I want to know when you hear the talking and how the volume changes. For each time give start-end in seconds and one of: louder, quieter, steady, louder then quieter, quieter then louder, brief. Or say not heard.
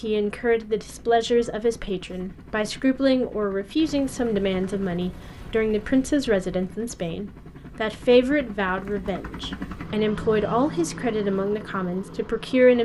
0.0-12.8 steady.